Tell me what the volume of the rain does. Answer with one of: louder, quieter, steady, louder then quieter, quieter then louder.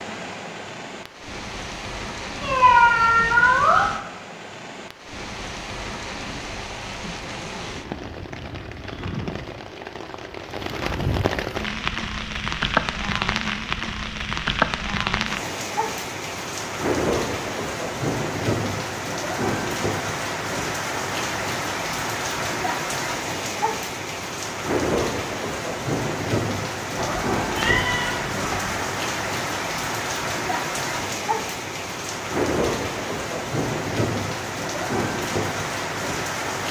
louder.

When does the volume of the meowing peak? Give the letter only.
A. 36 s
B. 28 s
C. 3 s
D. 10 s
C.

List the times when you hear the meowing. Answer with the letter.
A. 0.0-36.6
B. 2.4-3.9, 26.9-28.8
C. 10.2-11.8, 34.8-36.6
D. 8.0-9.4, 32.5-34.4
B.